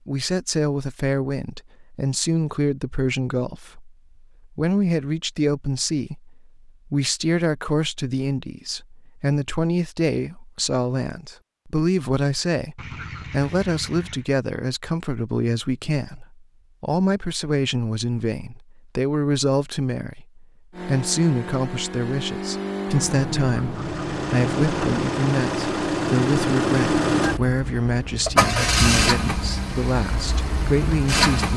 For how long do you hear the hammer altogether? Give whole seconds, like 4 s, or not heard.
not heard.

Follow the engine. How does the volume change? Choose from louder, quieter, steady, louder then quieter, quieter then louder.
louder then quieter.